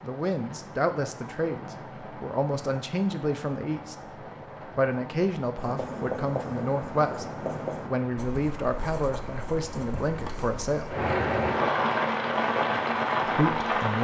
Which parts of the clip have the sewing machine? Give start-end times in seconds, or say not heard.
not heard.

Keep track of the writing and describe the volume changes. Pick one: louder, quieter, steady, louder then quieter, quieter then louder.
quieter.